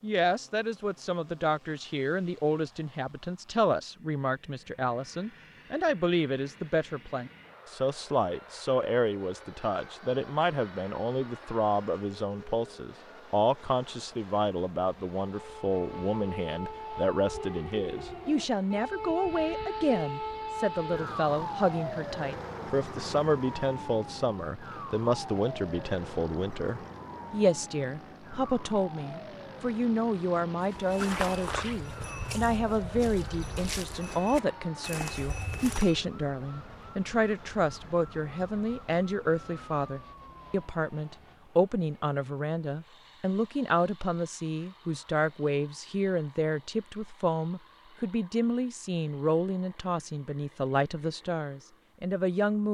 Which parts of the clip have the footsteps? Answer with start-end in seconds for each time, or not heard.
30.6-36.0.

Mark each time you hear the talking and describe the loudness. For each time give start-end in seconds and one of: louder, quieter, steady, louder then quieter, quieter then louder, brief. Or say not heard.
0.0-52.6 steady.